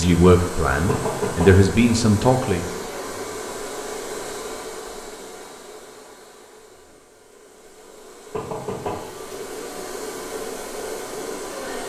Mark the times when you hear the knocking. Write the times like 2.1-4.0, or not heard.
0.8-1.5, 8.3-9.1.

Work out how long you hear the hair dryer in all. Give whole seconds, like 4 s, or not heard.
12 s.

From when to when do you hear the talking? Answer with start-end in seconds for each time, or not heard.
0.0-2.6.